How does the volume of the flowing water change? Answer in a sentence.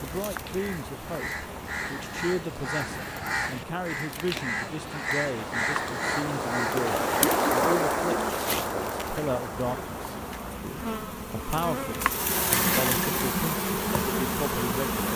The volume of the flowing water goes up, then down.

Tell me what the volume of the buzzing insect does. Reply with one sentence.
The volume of the buzzing insect goes up.